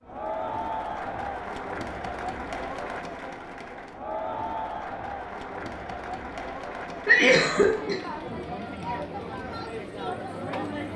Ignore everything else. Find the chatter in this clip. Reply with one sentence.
The chatter can be heard from 0.0 to 10.9 s.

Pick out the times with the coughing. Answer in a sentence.
You can hear the coughing from 7.0 to 8.0 s.